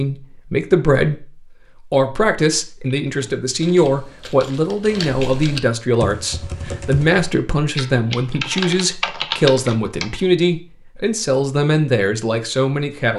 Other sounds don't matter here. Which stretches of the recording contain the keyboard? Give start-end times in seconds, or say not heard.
3.0-10.2.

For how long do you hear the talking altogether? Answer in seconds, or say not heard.
13 s.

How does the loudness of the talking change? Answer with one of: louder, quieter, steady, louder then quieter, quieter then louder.
steady.